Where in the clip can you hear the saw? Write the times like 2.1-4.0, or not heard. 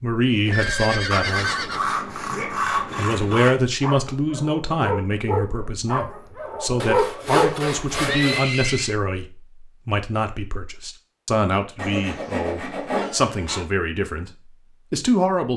1.1-3.5, 6.8-8.6, 11.8-13.7.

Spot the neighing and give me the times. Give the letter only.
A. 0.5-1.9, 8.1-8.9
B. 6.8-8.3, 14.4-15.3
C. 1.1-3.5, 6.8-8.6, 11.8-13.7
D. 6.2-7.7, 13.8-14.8
A.